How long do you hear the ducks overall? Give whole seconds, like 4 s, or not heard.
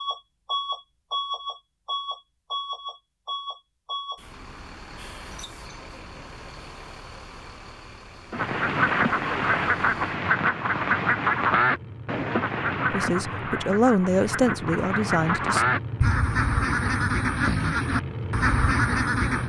11 s.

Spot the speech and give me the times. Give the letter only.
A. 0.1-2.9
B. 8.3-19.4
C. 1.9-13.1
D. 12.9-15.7
D.